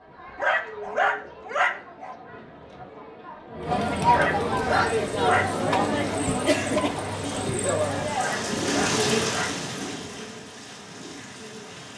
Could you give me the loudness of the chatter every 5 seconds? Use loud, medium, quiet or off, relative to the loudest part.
loud, loud, off.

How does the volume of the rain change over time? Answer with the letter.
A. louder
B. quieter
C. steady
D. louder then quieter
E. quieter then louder
D.